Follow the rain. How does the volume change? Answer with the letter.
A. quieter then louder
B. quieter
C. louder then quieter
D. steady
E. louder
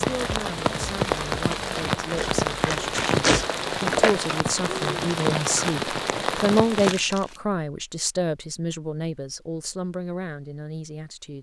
D.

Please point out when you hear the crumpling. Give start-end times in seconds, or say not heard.
2.1-4.2, 6.8-7.4.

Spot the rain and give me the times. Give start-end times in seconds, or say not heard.
0.0-7.0.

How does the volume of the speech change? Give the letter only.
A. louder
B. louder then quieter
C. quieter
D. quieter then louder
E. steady
B.